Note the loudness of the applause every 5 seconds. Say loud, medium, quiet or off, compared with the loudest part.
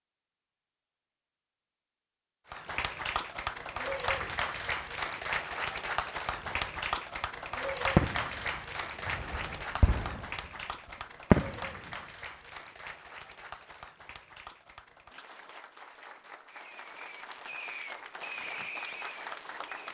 loud, loud, medium, medium.